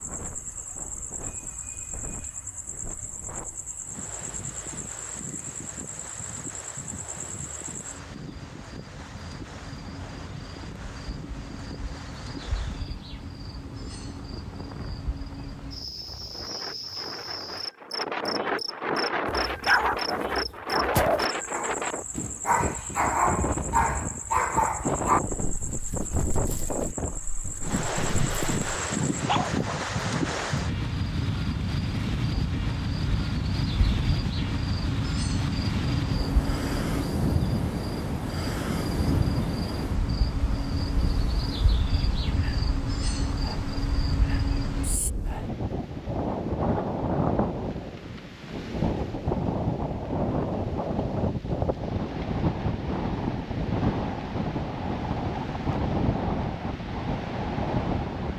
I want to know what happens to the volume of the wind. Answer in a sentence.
The loudness of the wind goes up.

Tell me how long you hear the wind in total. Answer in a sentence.
The wind can be heard for 58 seconds in total.